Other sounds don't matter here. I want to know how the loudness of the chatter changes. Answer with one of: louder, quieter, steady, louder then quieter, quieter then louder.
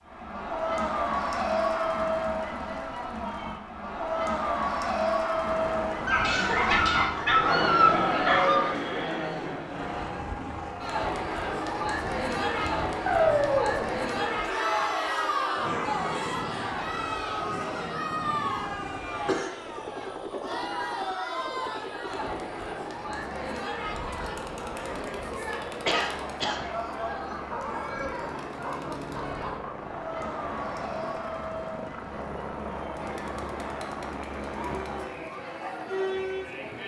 quieter.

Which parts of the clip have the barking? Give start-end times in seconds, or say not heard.
6.0-8.7, 13.1-13.9, 27.5-29.8.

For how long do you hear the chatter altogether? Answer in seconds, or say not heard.
37 s.